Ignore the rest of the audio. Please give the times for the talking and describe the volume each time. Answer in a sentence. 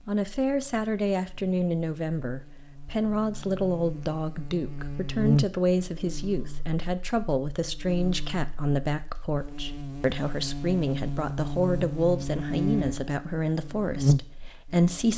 The talking can be heard from 0.1 to 15.1 s, at a steady volume.